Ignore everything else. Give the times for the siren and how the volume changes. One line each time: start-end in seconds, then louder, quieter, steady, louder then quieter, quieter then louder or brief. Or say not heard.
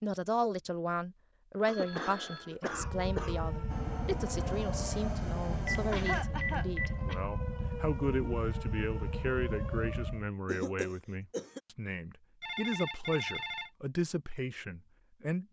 2.6-10.3 steady.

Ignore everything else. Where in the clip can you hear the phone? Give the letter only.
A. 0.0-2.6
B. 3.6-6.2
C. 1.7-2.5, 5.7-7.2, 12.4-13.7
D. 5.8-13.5
C.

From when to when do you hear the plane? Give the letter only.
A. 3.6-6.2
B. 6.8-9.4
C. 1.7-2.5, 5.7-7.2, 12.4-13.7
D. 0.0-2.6
A.